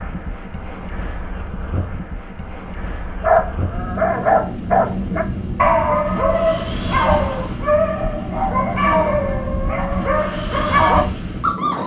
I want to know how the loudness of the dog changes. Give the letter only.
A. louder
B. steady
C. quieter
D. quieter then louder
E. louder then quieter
B.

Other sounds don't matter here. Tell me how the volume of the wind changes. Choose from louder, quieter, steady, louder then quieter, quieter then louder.
louder.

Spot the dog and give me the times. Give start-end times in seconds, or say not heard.
3.2-11.8.